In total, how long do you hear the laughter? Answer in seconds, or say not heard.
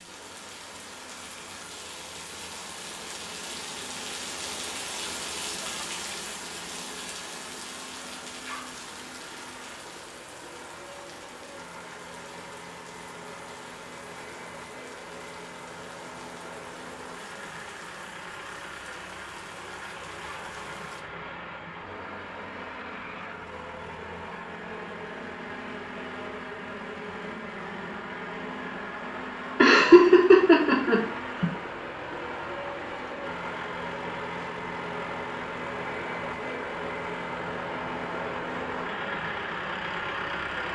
2 s.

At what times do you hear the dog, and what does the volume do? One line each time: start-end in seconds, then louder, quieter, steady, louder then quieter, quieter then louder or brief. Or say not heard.
not heard.